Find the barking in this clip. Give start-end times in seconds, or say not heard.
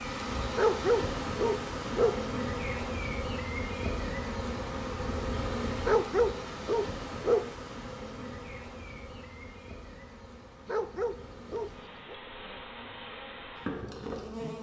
0.6-2.2, 5.8-7.5, 10.7-12.2.